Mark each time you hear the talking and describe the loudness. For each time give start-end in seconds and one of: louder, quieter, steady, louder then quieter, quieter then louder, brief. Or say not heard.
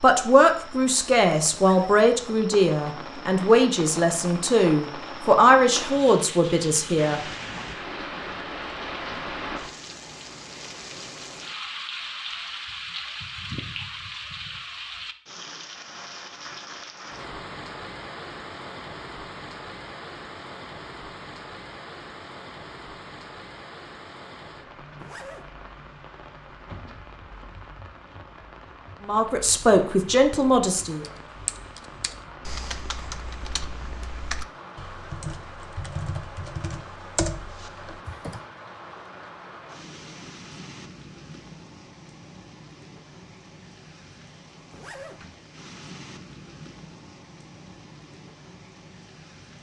0.0-7.2 steady
29.0-31.1 brief.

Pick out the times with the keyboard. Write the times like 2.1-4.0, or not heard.
31.0-38.4.